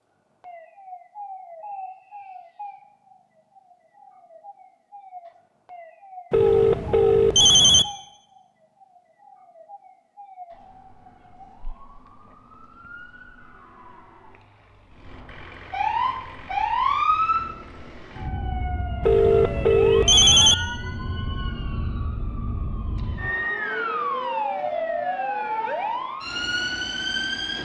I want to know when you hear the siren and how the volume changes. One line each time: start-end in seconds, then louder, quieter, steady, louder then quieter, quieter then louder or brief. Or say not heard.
0.4-27.6 louder.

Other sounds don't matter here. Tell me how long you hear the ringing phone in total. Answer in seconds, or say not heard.
3 s.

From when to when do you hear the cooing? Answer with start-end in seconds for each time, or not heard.
not heard.